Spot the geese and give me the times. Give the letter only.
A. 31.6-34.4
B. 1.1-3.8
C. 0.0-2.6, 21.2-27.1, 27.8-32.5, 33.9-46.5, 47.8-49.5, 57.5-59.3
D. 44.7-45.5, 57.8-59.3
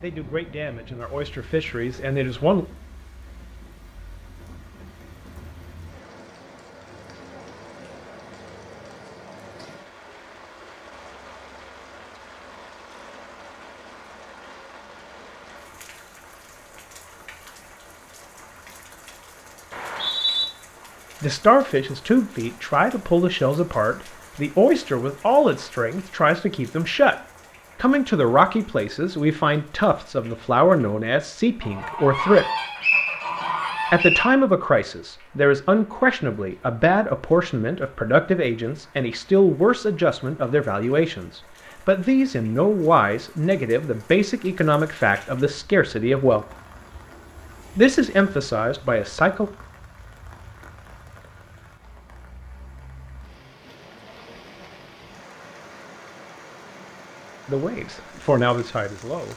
A.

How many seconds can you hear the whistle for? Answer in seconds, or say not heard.
2 s.